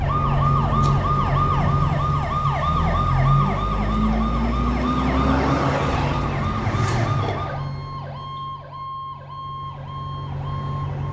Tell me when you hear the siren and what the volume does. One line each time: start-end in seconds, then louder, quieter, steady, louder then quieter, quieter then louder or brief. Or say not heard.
0.0-11.0 quieter.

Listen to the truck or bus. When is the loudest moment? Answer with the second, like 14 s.
1 s.